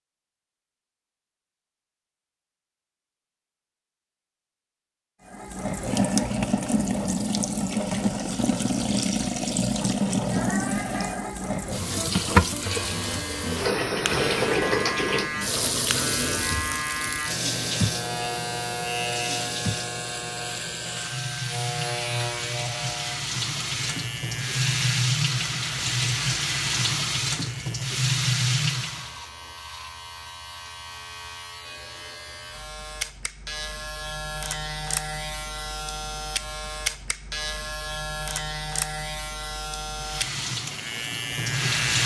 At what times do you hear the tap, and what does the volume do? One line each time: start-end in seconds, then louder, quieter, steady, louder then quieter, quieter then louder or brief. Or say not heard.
5.2-29.1 quieter then louder
40.0-42.0 brief.